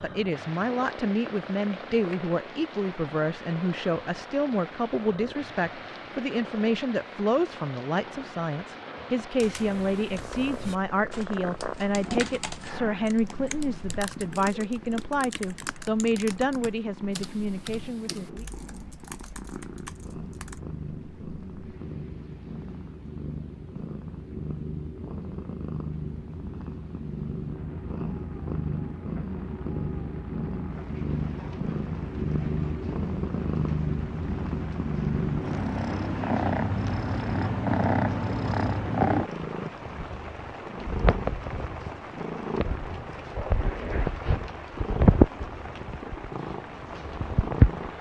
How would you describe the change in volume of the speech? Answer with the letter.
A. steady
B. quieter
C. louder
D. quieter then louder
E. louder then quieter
A.